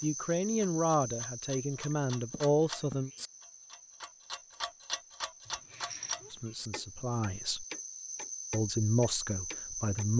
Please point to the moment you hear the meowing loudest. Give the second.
6 s.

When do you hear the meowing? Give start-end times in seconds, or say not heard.
1.9-3.0, 5.5-6.5.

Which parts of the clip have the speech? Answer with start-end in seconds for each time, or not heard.
0.0-3.1, 6.3-7.7, 8.5-10.1.